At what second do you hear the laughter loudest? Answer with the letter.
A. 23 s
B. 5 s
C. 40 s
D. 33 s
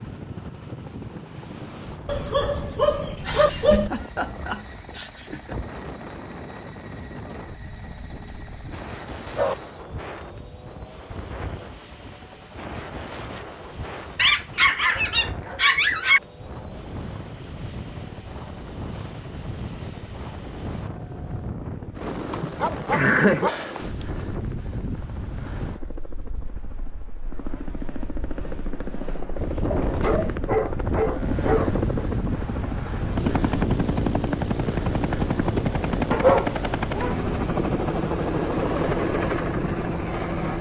A.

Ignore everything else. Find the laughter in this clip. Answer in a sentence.
You can hear the laughter from 3.2 to 5.5 s and from 22.3 to 23.5 s.